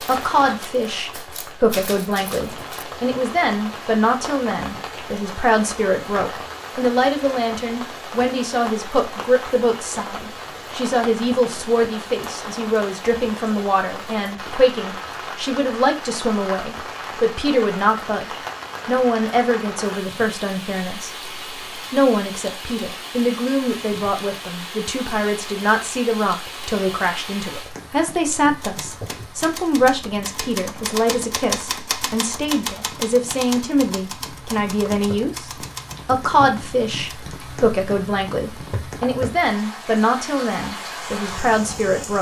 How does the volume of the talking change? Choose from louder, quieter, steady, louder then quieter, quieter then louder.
steady.